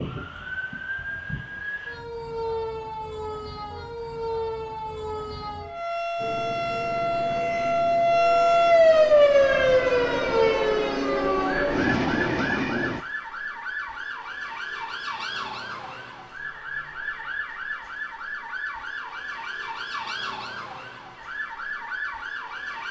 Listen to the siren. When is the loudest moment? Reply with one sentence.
The loudest moment of the siren is at 9 seconds.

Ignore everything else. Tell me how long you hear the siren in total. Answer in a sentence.
You can hear the siren for 23 seconds altogether.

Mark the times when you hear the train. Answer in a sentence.
You can hear the train from 6.2 to 13.1 s.